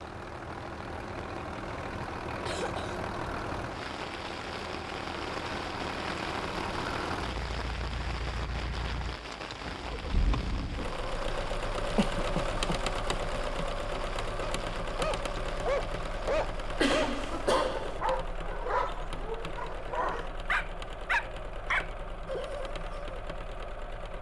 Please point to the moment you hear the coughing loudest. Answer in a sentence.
The volume of the coughing peaks at 17 seconds.